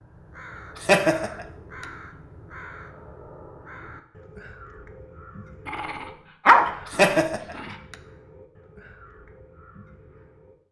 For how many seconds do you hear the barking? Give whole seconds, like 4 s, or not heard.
2 s.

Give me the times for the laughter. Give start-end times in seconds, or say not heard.
0.8-1.9, 6.9-8.0.